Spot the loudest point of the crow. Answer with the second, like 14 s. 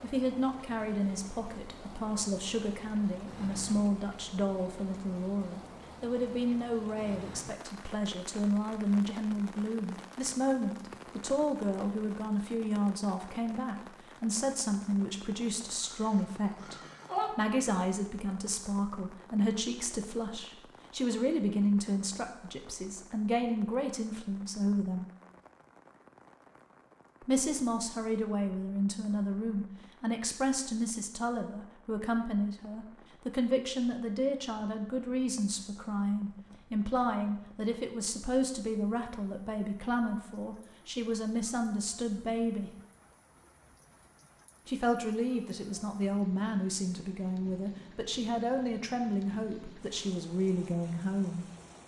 17 s.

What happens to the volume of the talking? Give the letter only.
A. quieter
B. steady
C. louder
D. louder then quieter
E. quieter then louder
B.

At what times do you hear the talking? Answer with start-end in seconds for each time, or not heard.
0.0-25.1, 27.2-42.7, 44.6-51.5.